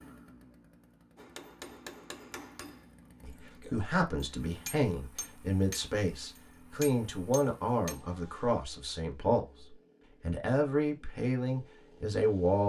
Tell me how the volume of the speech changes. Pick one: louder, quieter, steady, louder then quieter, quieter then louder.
steady.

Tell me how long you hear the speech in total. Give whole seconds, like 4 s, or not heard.
9 s.